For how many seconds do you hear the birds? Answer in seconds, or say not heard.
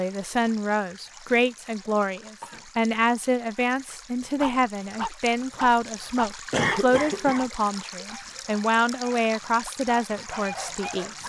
not heard.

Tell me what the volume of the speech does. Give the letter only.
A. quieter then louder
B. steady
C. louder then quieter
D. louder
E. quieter
B.